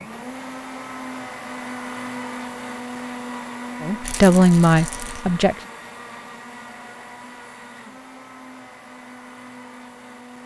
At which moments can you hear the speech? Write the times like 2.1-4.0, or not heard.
3.8-5.5.